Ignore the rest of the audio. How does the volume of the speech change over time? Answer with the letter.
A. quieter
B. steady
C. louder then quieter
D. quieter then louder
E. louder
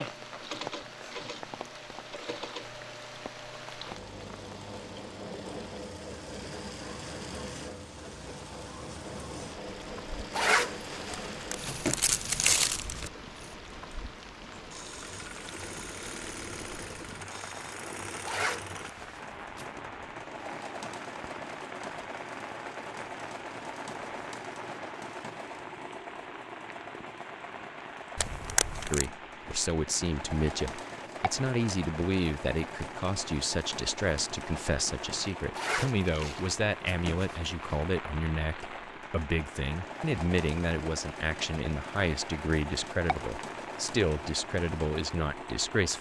B.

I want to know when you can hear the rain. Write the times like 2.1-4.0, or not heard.
0.0-45.9.